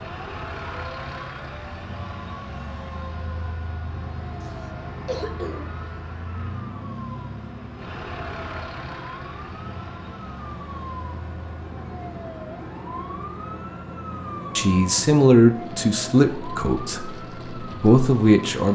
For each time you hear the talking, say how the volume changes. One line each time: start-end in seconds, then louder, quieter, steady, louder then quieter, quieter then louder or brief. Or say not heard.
14.6-18.7 quieter then louder.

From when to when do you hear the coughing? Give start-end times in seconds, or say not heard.
4.4-5.8.